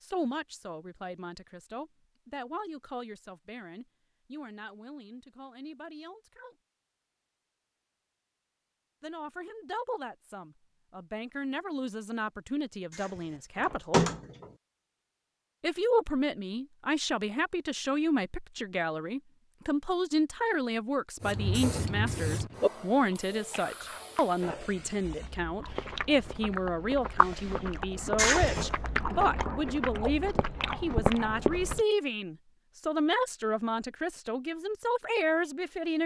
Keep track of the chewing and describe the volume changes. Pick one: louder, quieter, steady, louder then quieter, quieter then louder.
louder.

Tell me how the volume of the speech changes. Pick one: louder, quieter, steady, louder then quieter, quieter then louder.
louder.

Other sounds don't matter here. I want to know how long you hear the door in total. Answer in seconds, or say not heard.
2 s.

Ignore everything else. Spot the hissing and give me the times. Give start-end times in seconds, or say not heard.
21.2-27.9.